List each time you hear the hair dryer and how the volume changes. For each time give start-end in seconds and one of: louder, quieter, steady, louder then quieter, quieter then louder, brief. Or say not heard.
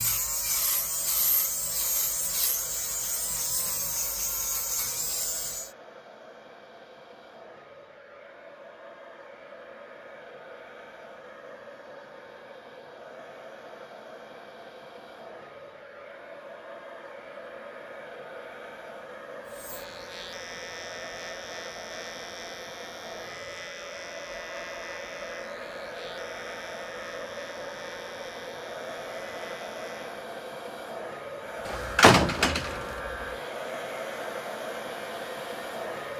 0.0-36.1 louder.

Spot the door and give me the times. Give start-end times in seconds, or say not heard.
31.6-32.8.